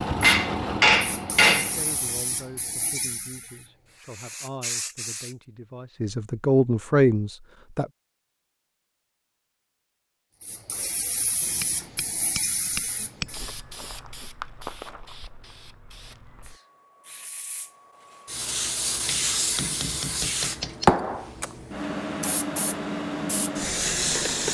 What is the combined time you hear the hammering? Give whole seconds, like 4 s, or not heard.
5 s.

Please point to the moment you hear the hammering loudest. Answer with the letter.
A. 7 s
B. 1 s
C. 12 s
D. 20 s
B.